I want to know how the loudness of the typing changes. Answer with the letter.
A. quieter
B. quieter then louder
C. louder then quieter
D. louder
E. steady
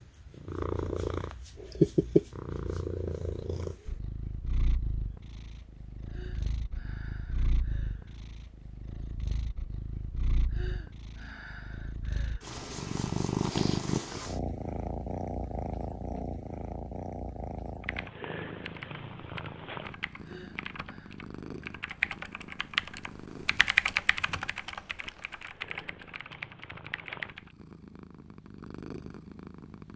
C.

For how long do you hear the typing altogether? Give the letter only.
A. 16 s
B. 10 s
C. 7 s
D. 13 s
B.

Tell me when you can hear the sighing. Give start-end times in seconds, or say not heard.
6.0-8.2, 10.5-12.6, 20.2-21.1.